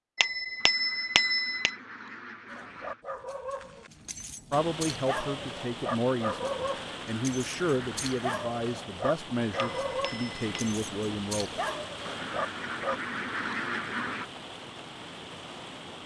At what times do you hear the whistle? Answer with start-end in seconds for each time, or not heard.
not heard.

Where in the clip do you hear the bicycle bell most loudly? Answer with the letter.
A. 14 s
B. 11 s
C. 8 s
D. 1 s
D.